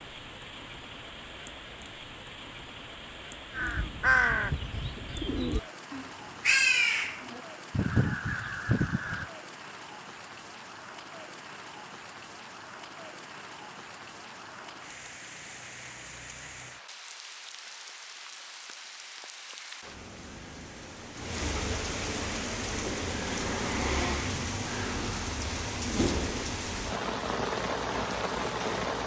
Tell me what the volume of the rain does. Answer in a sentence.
The loudness of the rain goes up.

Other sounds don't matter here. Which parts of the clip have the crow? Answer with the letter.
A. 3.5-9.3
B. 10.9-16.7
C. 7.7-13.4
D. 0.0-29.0
A.